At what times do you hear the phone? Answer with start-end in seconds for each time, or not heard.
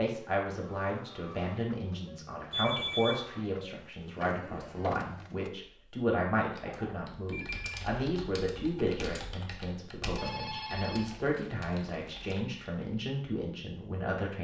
2.5-3.2, 6.7-7.8, 10.2-12.4.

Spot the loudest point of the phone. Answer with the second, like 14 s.
3 s.